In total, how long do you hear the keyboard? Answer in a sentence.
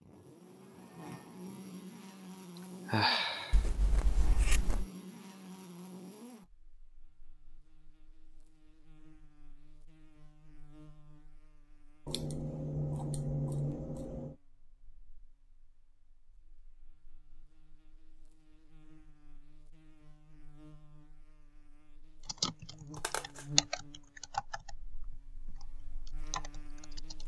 You can hear the keyboard for 5 seconds altogether.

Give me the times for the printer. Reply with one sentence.
The printer can't be heard in this clip.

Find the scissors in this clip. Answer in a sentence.
You can hear the scissors from 3.5 to 4.8 s, from 12.1 to 14.3 s and from 23.0 to 23.4 s.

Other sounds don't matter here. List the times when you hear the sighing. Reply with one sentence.
The sighing can be heard from 2.9 to 3.6 s.